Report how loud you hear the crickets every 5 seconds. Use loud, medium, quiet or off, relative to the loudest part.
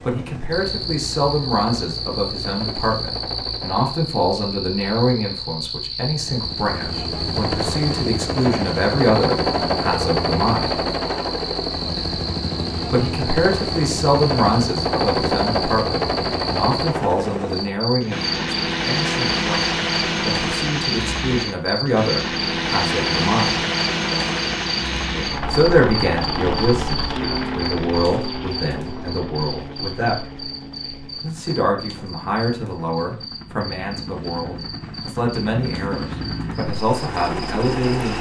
loud, loud, loud, loud, loud, loud, medium, medium.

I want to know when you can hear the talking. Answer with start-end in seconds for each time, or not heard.
0.1-10.8, 12.9-23.6, 25.5-30.1, 31.2-38.1.